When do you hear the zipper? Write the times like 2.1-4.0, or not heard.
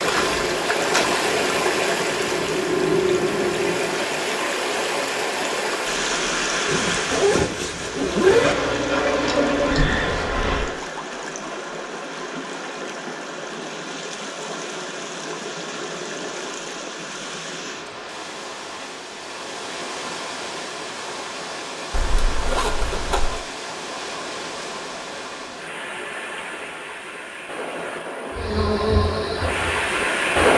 6.7-8.6, 21.9-23.4.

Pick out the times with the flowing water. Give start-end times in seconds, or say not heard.
0.0-30.5.